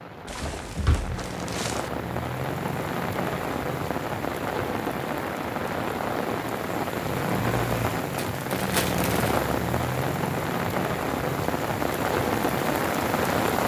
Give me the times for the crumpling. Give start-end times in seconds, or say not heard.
0.2-1.9, 8.3-9.4.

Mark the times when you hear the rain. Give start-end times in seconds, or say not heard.
0.0-13.6.